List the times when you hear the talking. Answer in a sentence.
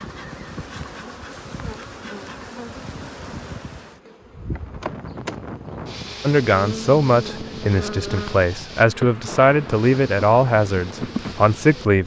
The talking can be heard from 6.2 to 12.0 s.